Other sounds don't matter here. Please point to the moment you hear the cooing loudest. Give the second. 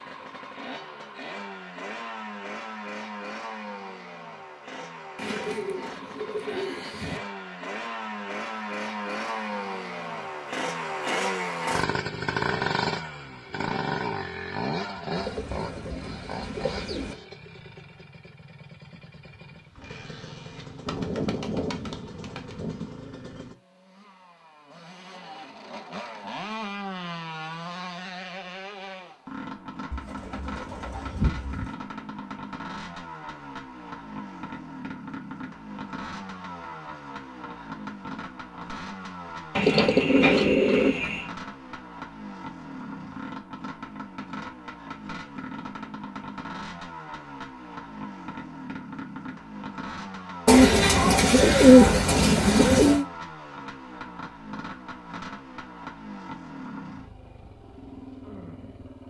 52 s.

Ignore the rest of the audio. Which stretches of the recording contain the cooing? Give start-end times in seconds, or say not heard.
5.2-7.2, 15.2-17.1, 20.9-22.9, 29.9-31.7, 39.5-41.2, 50.5-53.0.